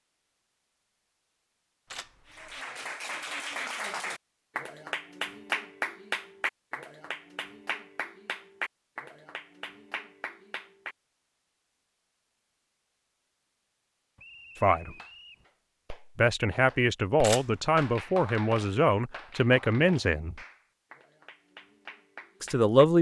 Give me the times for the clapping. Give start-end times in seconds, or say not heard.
2.3-10.9, 14.9-22.8.